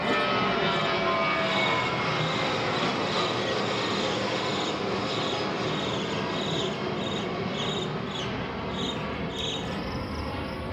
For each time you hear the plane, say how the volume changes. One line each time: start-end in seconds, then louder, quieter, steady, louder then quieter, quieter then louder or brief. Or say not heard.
0.0-10.6 quieter.